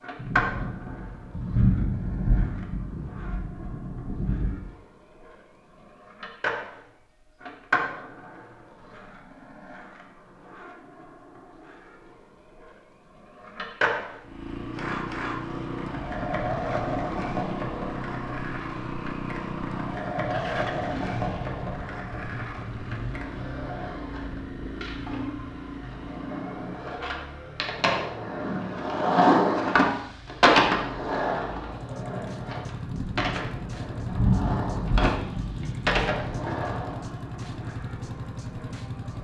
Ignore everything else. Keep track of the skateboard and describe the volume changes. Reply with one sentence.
The volume of the skateboard goes up, then down.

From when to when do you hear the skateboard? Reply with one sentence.
You can hear the skateboard from 0.0 to 39.1 s.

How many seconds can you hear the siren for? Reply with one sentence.
You can't hear the siren here.